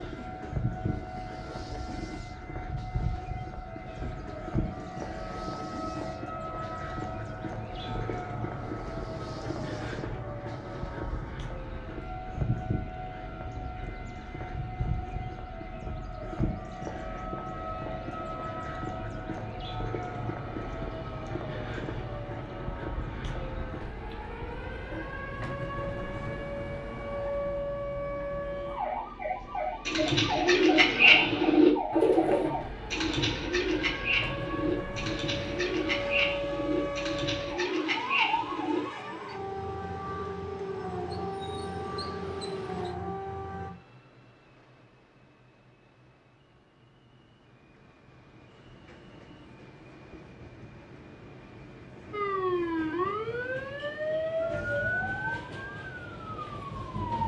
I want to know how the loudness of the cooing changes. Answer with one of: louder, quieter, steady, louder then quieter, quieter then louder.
quieter.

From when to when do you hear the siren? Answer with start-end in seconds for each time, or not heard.
0.0-43.7, 52.1-57.2.